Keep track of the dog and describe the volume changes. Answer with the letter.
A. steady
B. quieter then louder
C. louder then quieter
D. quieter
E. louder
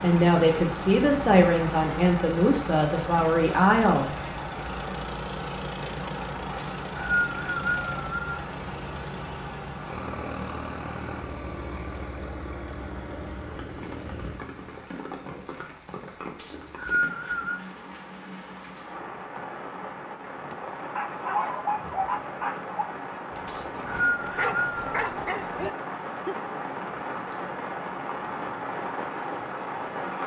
B.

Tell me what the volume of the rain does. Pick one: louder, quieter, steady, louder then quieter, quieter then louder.
quieter then louder.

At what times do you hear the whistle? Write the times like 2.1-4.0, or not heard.
6.5-8.4, 16.4-17.6, 23.4-25.1.